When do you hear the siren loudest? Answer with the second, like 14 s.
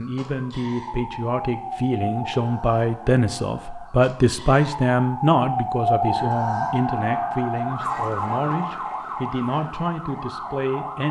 6 s.